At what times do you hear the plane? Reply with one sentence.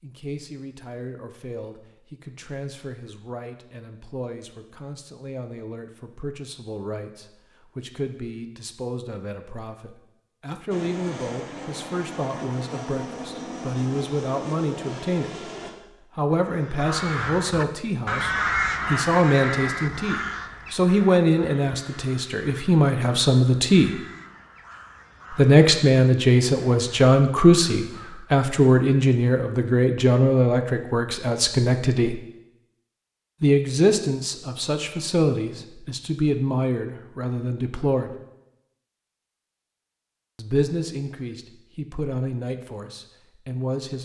The plane can be heard from 10.7 to 15.8 s.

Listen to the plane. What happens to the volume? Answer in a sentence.
The loudness of the plane stays about the same.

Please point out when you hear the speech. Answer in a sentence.
You can hear the speech from 0.0 to 15.5 s, from 16.1 to 23.9 s, from 25.3 to 32.1 s, from 33.4 to 38.1 s and from 40.4 to 44.0 s.